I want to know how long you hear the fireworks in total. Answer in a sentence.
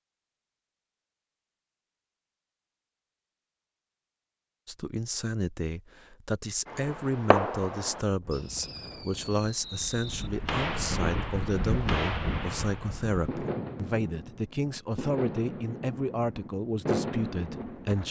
You can hear the fireworks for 11 seconds altogether.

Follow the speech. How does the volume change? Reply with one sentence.
The loudness of the speech stays about the same.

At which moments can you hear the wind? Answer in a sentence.
The wind can be heard from 8.2 to 18.0 s.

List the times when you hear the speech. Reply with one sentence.
The speech can be heard from 4.7 to 18.0 s.